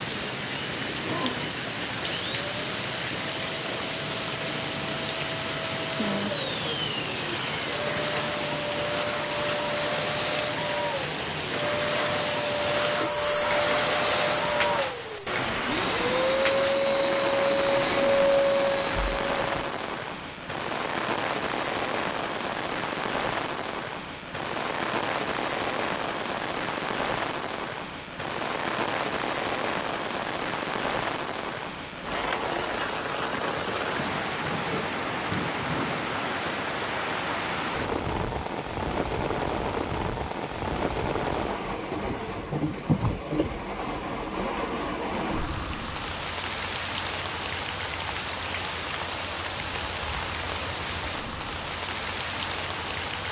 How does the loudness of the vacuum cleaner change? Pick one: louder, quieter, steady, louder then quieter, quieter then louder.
louder.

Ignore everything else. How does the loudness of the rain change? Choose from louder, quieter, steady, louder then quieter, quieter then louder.
steady.